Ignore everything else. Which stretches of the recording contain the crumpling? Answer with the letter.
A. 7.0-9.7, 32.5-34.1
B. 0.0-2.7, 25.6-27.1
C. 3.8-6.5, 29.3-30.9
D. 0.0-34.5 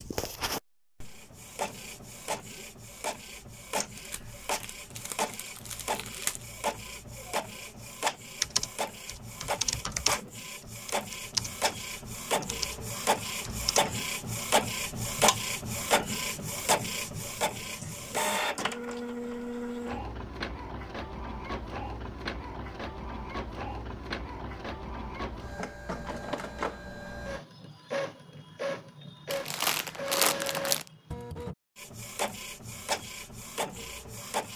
C.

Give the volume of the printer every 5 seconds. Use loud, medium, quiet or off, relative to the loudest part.
medium, medium, loud, loud, medium, medium, medium.